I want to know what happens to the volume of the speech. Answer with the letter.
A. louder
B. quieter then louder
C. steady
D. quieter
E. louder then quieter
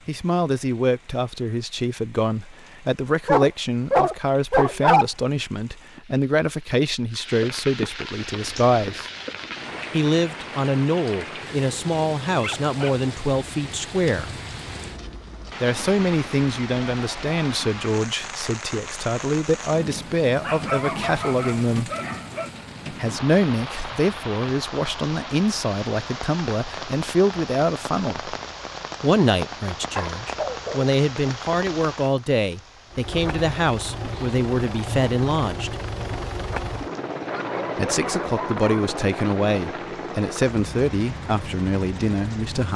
C.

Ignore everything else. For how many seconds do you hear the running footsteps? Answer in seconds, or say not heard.
not heard.